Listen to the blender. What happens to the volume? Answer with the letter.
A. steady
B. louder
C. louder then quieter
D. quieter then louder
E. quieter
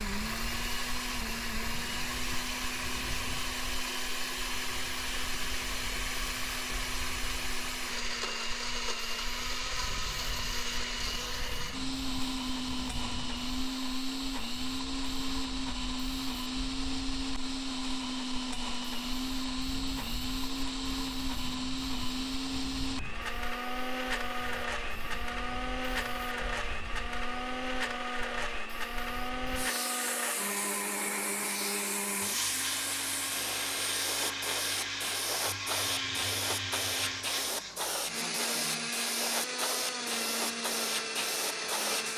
A.